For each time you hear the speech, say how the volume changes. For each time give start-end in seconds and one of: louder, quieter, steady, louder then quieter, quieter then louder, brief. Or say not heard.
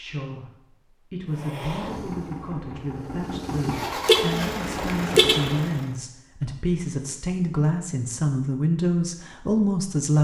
0.0-10.2 louder.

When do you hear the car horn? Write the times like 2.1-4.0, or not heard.
4.0-5.6.